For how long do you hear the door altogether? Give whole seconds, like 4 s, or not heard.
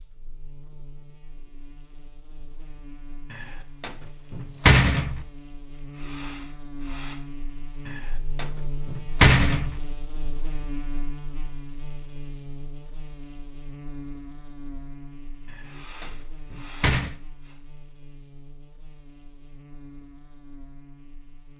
5 s.